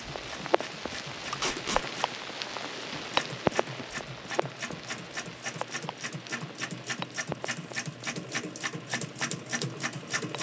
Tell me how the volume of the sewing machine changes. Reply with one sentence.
The loudness of the sewing machine goes up.